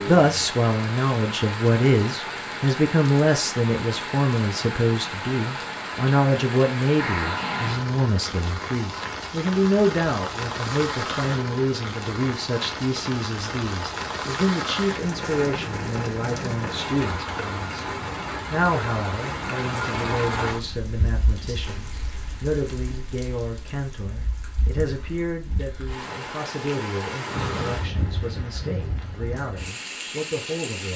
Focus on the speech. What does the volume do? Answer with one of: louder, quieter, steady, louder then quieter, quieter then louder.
quieter.